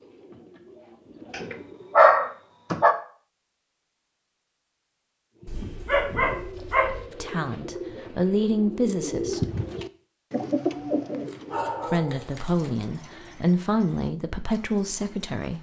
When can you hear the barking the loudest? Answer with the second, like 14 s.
2 s.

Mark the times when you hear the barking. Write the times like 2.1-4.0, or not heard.
1.3-3.0, 5.5-7.0, 10.7-12.7.